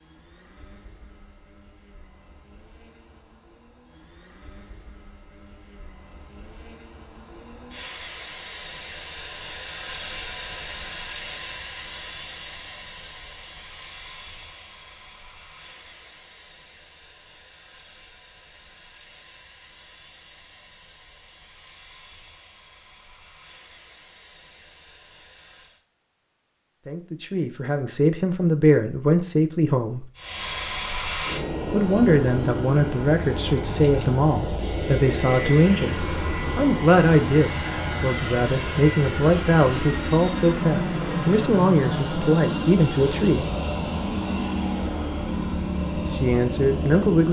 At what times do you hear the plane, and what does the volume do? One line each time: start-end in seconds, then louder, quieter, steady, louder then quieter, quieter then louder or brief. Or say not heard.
0.0-25.9 louder then quieter
30.1-47.2 steady.